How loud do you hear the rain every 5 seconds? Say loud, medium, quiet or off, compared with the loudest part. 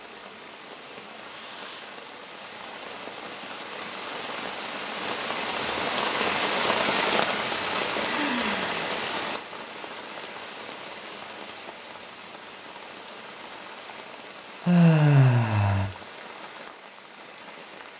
medium, loud, quiet, quiet.